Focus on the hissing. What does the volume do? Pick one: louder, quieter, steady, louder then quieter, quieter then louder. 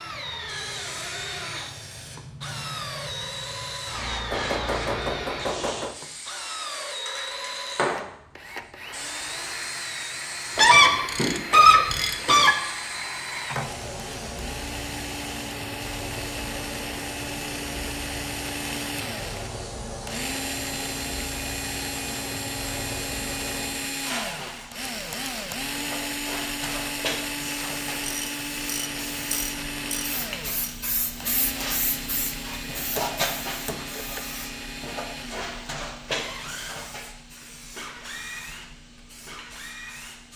steady.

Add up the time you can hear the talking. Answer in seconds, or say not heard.
not heard.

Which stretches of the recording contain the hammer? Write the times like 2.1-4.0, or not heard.
4.3-6.0, 33.0-34.2.